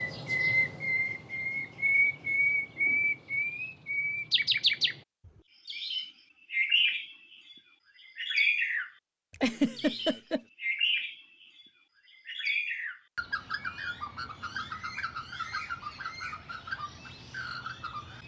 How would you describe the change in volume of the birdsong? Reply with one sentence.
The volume of the birdsong goes down.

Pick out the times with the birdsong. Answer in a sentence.
The birdsong can be heard from 0.0 to 5.0 s, from 5.7 to 8.9 s and from 9.8 to 18.2 s.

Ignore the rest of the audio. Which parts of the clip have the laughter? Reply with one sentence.
You can hear the laughter from 9.4 to 10.4 s.